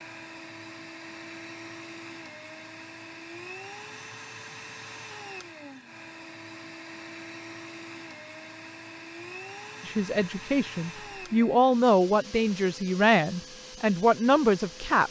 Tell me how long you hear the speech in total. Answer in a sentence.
You can hear the speech for 5 seconds altogether.